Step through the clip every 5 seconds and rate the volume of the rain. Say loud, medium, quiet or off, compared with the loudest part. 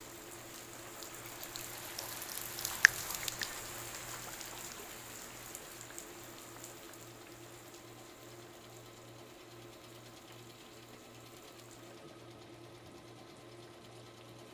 loud, medium, quiet.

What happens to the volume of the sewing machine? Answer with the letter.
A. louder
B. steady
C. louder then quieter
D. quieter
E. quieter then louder
B.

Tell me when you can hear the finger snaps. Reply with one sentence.
You can hear the finger snaps from 2.8 to 3.5 s.